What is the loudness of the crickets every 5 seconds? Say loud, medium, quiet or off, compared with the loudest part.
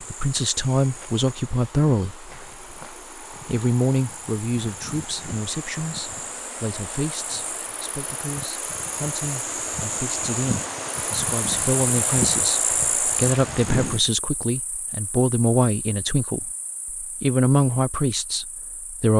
quiet, medium, loud, quiet.